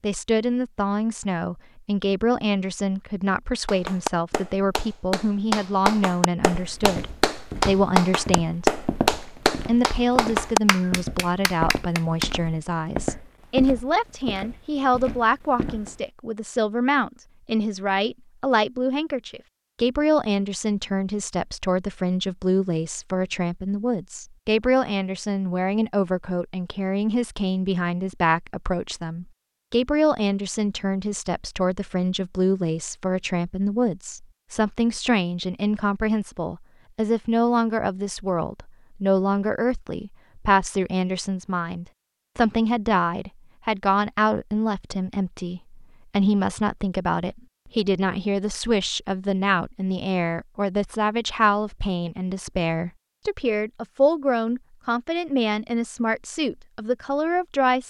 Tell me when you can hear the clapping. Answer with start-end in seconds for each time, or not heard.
3.6-12.3.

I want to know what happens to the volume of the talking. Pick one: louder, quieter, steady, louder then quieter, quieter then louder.
steady.